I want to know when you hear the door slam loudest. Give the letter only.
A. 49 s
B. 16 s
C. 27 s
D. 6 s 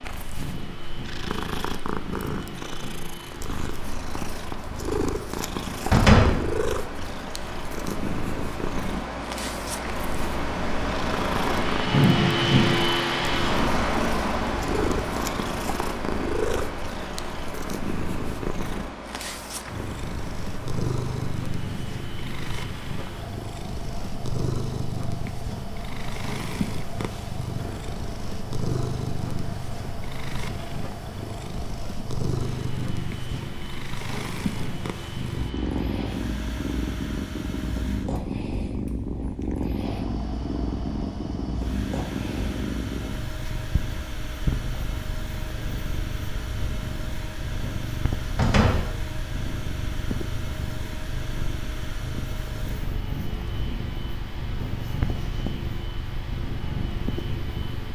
D.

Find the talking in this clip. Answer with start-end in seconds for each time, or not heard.
not heard.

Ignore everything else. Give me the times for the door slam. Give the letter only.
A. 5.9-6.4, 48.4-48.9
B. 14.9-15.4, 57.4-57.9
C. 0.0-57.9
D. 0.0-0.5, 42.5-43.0
A.